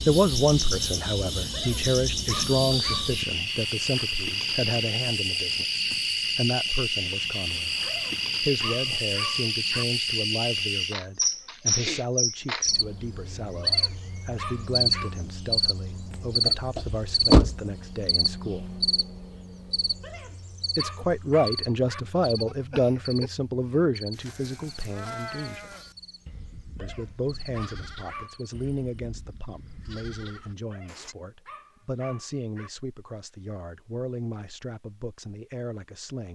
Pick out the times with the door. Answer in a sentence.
The door can be heard from 16.1 to 17.6 s.